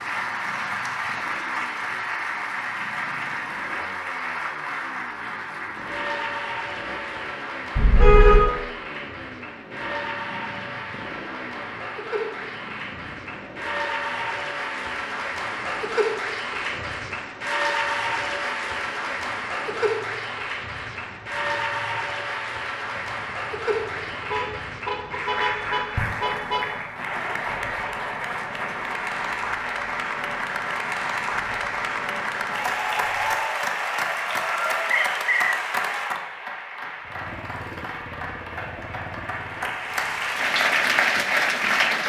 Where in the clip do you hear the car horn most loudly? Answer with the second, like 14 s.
8 s.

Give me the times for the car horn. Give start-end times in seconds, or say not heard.
7.8-8.5, 24.3-26.6.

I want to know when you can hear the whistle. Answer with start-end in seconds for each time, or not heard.
34.9-35.6.